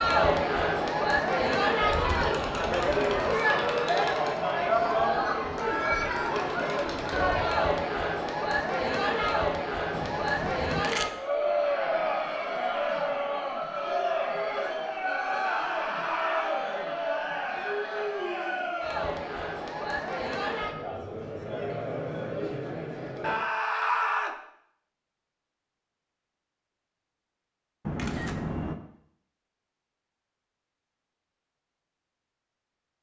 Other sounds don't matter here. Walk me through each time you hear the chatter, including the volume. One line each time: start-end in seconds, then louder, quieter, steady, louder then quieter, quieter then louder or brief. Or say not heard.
0.0-23.4 quieter.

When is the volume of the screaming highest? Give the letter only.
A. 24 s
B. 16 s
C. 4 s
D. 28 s
A.